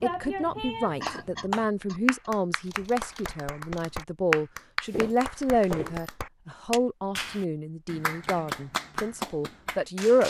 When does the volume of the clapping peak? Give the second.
4 s.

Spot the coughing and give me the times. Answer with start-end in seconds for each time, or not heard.
1.0-2.5.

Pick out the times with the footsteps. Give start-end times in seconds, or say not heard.
4.9-6.1.